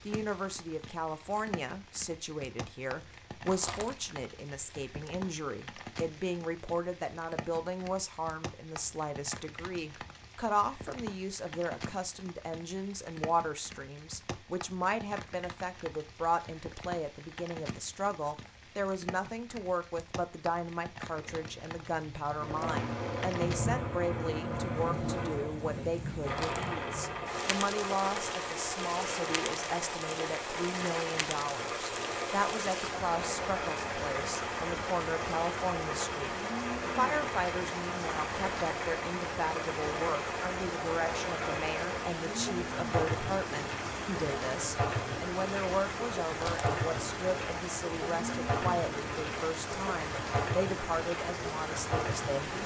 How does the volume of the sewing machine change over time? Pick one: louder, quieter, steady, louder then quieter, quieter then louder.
steady.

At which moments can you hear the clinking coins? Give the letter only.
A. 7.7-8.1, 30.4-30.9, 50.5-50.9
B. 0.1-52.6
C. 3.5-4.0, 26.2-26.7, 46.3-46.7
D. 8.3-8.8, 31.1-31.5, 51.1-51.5
C.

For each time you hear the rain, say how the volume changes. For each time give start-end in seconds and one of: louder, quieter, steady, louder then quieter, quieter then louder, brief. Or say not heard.
0.0-52.6 louder.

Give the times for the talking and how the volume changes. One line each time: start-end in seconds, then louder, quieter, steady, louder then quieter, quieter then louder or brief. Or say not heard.
0.1-52.6 steady.